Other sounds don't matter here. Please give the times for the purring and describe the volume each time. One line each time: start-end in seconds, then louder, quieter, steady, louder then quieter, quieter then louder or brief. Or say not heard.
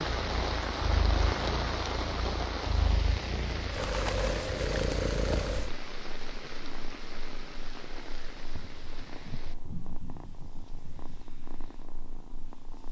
0.0-12.8 louder then quieter.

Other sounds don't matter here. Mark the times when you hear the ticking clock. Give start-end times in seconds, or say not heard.
not heard.